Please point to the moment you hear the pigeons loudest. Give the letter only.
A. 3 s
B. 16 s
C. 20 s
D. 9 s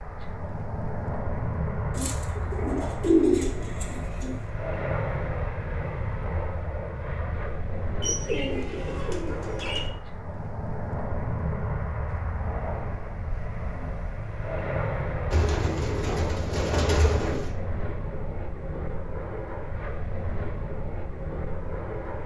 A.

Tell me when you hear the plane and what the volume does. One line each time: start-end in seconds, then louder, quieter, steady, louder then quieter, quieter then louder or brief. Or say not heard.
0.0-22.2 steady.